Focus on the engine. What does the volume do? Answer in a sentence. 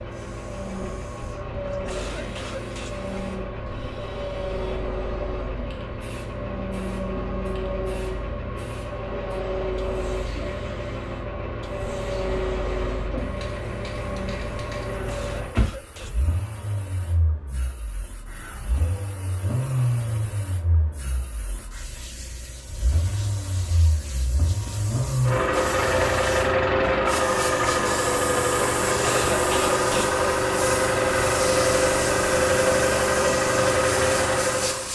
The volume of the engine goes up.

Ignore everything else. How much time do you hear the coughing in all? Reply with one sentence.
You can hear the coughing for 4 seconds altogether.